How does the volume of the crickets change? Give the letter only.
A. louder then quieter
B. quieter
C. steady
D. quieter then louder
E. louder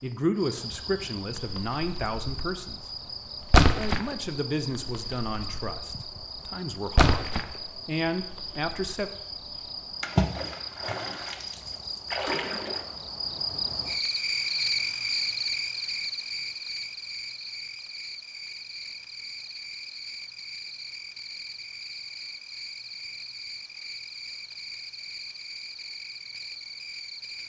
A.